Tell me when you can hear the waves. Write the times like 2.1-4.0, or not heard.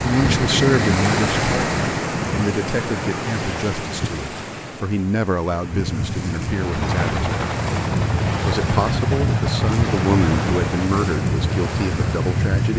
0.0-12.7.